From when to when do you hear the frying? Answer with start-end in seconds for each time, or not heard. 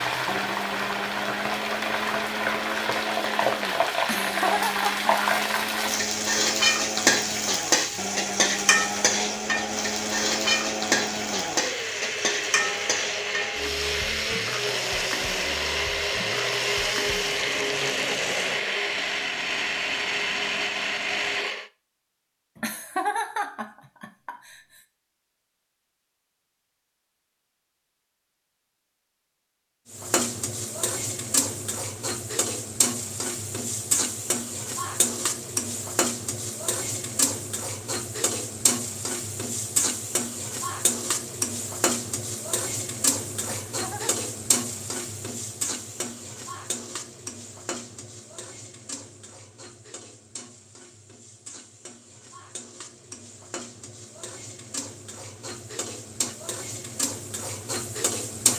0.0-18.6, 29.9-58.5.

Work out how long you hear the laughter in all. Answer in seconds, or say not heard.
4 s.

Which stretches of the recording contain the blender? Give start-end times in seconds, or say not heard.
0.1-21.7.